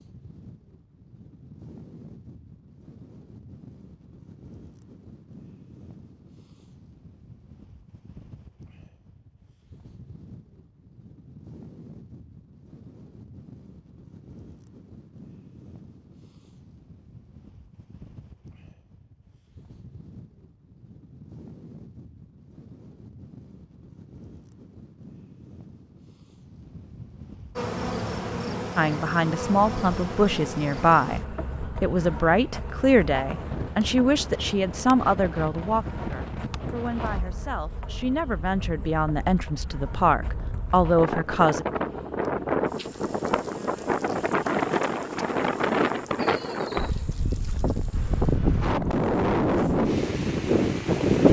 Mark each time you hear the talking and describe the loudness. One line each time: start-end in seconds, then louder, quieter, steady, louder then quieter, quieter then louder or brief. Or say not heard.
28.8-31.2 brief
31.8-41.6 quieter then louder.